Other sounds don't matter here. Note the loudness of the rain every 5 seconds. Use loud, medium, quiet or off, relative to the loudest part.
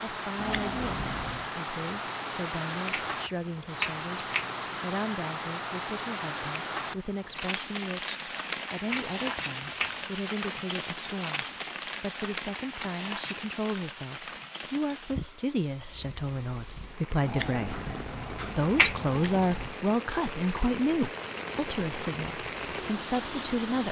loud, loud, loud, medium, loud.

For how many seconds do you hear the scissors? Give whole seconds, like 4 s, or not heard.
4 s.